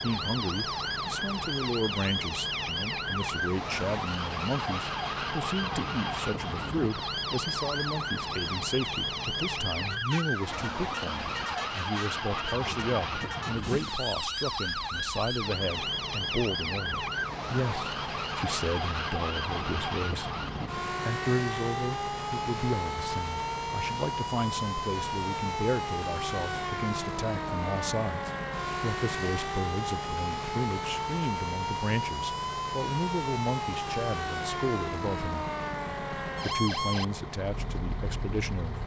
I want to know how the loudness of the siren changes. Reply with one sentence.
The loudness of the siren stays about the same.